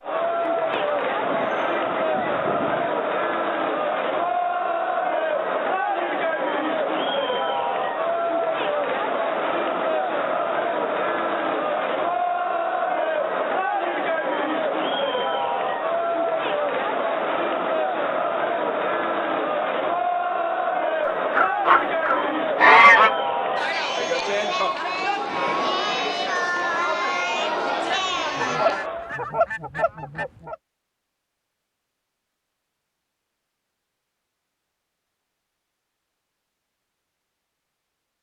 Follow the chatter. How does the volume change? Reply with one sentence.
The loudness of the chatter stays about the same.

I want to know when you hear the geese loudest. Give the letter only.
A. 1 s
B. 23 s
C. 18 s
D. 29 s
B.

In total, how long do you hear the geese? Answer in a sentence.
The geese can be heard for 7 seconds in total.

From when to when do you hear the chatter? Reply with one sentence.
You can hear the chatter from 0.0 to 29.1 s.